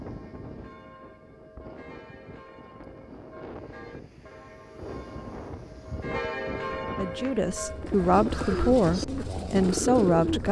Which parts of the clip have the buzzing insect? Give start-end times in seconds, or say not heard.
not heard.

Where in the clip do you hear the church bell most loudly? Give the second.
6 s.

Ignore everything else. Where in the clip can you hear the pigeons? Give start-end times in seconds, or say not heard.
7.0-10.4.